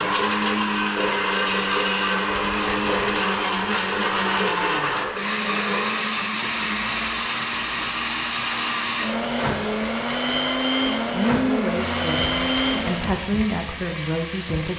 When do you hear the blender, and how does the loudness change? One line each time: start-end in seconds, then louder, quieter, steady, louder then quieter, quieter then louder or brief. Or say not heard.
0.0-13.2 steady.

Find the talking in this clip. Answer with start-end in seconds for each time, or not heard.
11.1-14.7.